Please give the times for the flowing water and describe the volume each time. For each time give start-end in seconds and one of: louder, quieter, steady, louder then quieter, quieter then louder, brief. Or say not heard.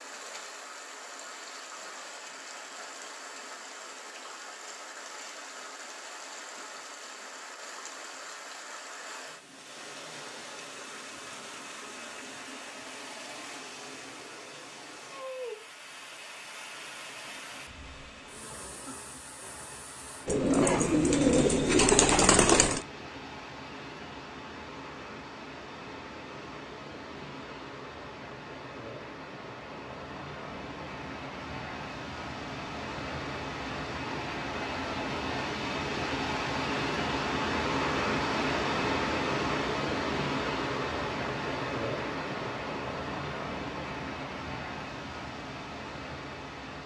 0.0-46.8 louder.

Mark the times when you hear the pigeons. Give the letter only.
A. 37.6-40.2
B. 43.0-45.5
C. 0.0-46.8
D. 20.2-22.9
D.